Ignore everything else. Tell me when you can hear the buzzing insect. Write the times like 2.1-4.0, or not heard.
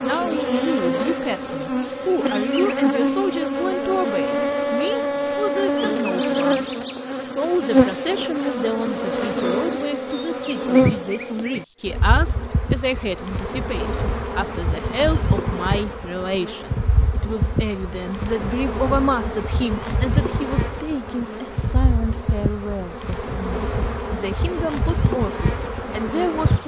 0.0-26.6.